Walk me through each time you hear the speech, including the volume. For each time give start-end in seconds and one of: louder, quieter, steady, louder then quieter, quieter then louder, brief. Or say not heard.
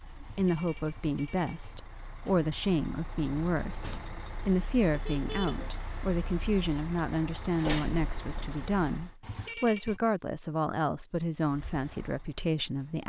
0.1-13.0 steady.